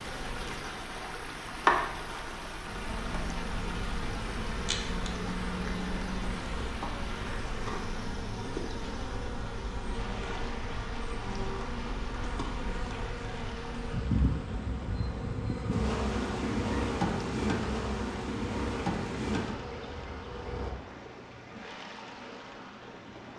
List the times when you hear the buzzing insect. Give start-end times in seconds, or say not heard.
0.0-20.8.